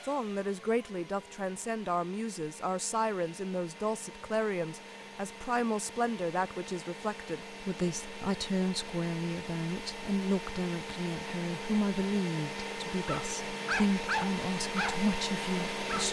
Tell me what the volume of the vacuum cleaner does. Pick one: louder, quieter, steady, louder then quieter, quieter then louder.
louder.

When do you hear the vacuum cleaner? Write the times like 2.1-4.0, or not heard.
0.0-16.0.